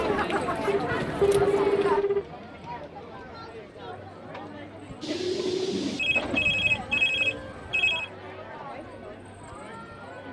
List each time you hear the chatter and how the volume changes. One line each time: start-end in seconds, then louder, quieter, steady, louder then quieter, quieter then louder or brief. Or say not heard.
0.0-10.2 quieter.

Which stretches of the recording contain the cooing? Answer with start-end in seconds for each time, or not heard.
5.0-7.0.